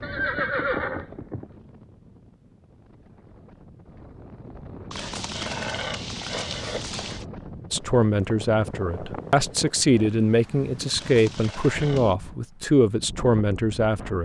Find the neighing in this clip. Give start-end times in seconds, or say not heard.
0.0-1.4, 4.9-7.2, 10.9-12.2.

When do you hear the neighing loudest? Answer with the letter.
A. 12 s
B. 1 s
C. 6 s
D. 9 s
B.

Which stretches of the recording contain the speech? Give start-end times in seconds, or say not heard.
7.7-14.2.